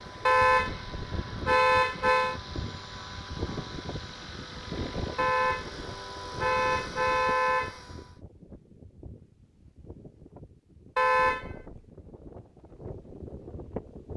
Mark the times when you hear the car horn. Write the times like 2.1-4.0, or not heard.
0.2-2.4, 5.2-7.8, 10.9-11.8.